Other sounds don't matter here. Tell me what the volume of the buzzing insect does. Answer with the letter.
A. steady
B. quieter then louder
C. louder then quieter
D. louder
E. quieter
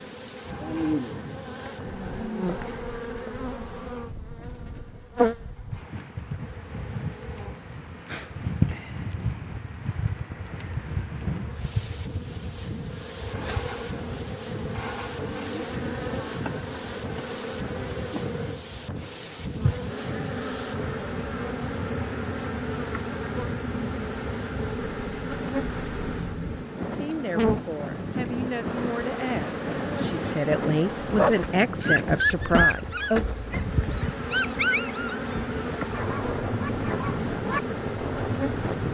A.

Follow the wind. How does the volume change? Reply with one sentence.
The volume of the wind goes up.